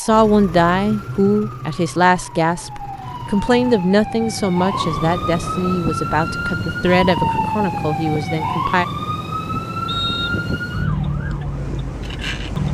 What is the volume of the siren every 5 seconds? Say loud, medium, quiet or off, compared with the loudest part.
medium, loud, loud.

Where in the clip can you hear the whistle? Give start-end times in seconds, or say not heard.
9.8-10.4.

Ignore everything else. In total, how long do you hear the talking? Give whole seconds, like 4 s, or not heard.
9 s.